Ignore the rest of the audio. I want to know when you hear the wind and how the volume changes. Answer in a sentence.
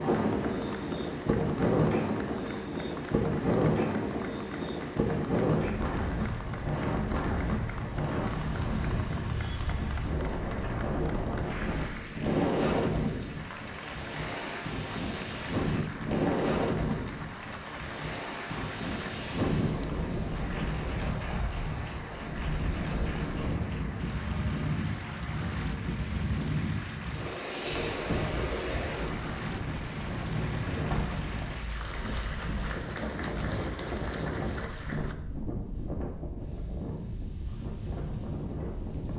You can hear the wind from 0.0 to 39.1 s, getting quieter.